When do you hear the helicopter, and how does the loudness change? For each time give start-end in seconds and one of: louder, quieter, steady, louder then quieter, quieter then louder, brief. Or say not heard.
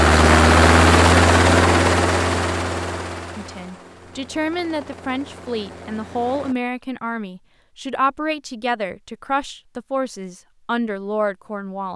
0.0-6.5 quieter.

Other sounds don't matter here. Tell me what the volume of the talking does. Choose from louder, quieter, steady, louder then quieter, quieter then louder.
steady.